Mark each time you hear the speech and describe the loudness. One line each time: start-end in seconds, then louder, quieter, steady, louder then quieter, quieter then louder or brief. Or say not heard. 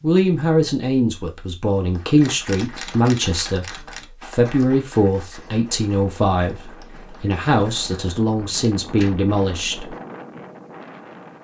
0.0-9.9 steady.